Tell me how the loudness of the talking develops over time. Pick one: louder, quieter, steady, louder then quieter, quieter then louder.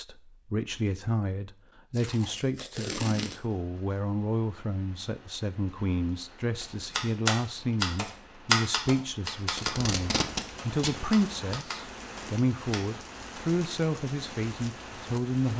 steady.